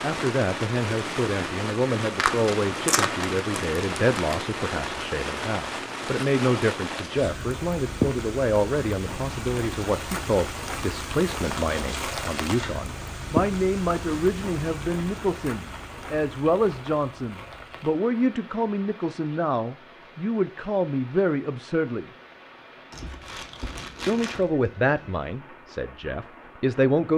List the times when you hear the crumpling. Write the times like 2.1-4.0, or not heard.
2.1-4.5, 11.4-12.8, 22.9-24.4.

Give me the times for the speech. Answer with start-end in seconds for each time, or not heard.
0.0-22.1, 24.1-27.1.